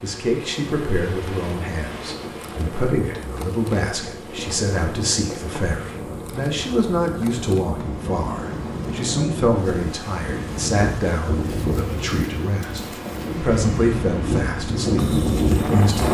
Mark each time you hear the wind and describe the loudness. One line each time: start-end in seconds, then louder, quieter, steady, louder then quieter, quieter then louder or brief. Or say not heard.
0.0-16.0 louder.